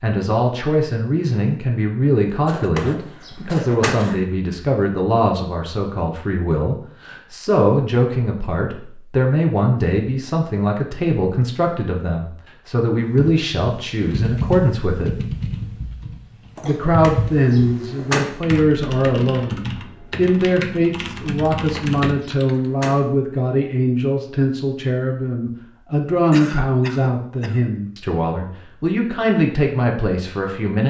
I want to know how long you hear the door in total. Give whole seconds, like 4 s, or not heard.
4 s.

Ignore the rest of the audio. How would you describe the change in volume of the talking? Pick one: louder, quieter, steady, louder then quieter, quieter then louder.
steady.